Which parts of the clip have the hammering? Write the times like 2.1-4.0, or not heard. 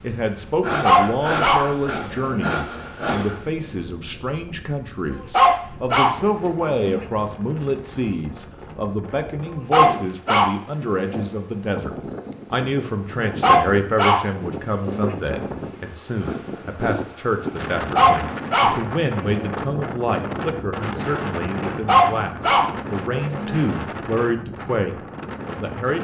not heard.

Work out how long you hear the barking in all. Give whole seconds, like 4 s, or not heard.
10 s.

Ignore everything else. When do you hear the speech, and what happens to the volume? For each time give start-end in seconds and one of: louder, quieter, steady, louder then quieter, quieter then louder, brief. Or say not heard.
0.0-25.9 steady.